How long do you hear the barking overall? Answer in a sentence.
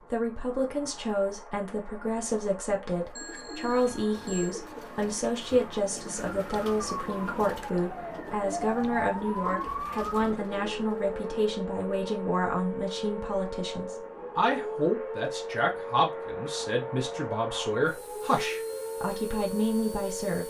The barking can't be heard in this clip.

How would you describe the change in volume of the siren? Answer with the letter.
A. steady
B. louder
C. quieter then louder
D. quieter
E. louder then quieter
A.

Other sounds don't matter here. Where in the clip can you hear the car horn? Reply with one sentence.
The car horn can't be heard in this clip.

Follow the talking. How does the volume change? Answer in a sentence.
The loudness of the talking stays about the same.